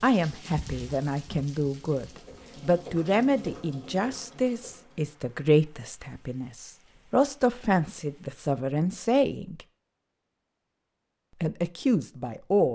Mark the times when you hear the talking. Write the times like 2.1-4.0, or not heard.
0.0-9.7, 11.4-12.7.